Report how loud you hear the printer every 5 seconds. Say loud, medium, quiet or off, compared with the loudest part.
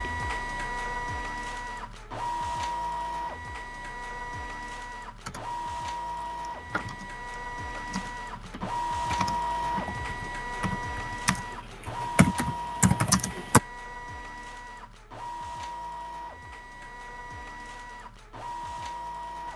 loud, loud, loud, medium.